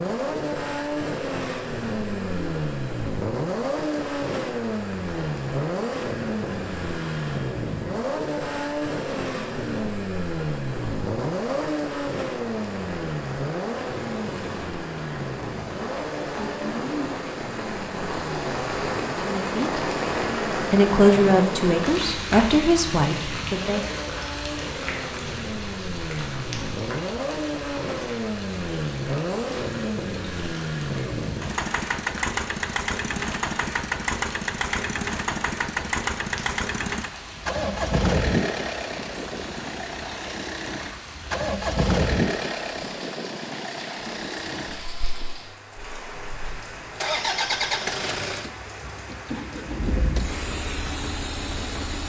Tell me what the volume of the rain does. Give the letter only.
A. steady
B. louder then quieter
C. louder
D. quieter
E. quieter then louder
B.